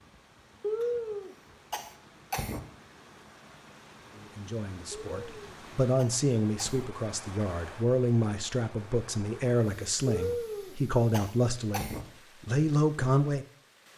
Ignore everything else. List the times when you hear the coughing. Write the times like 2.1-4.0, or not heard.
0.6-2.6, 5.0-6.9, 10.1-12.1.